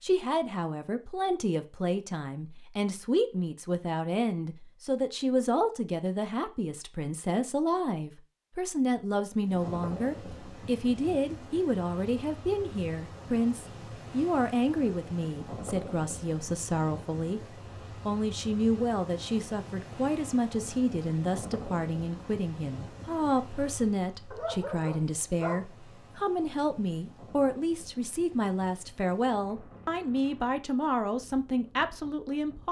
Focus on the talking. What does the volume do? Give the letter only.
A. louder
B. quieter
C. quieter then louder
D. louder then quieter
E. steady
E.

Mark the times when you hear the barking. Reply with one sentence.
You can hear the barking from 24.3 to 25.6 s.